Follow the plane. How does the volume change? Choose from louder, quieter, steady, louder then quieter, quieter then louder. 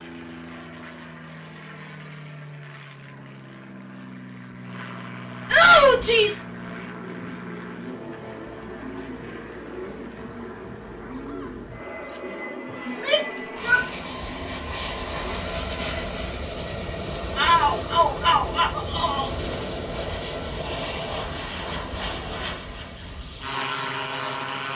louder.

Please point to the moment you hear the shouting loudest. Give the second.
6 s.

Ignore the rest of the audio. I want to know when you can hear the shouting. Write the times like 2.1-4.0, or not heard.
5.5-6.5, 12.8-13.8, 17.4-19.3.